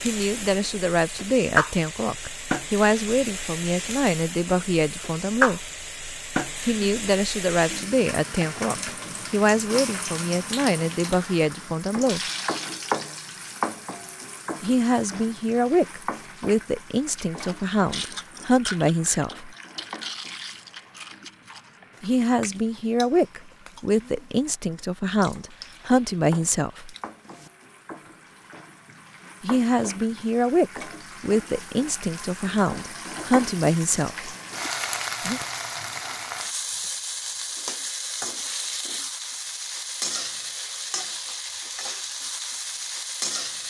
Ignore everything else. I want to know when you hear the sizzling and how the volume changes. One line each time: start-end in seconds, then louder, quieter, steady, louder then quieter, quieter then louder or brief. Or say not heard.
0.0-43.6 quieter then louder.